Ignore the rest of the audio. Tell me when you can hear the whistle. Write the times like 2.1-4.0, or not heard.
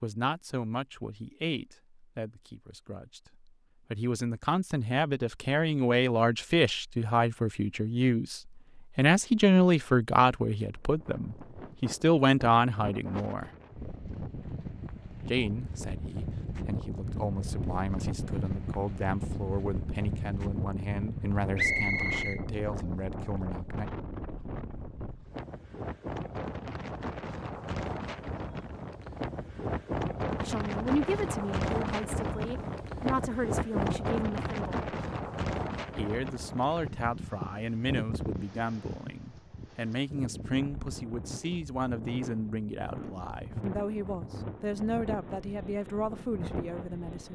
21.6-22.4.